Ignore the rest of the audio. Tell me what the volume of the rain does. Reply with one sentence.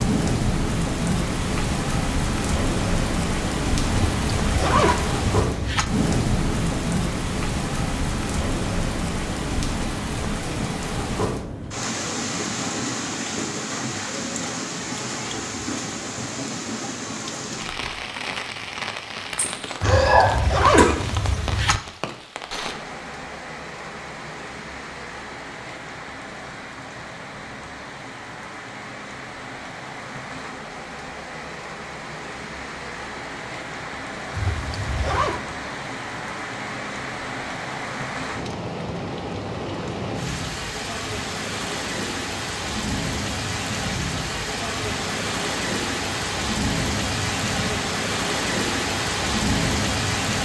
The volume of the rain goes down, then up.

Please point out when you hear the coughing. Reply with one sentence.
You can hear the coughing from 19.4 to 20.9 s.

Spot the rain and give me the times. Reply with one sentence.
You can hear the rain from 0.0 to 50.4 s.